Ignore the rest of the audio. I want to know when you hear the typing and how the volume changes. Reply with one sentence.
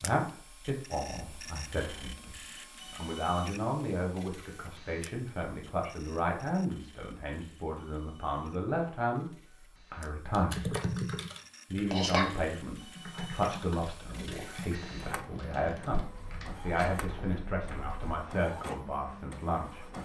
The typing can be heard from 10.3 to 18.1 s, getting quieter.